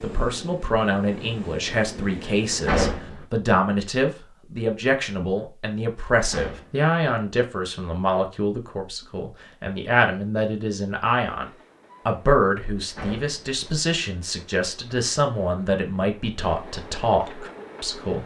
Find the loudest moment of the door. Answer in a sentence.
The loudest moment of the door is at 3 seconds.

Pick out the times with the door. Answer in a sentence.
You can hear the door from 2.6 to 3.2 s, from 6.2 to 6.9 s and from 12.9 to 13.4 s.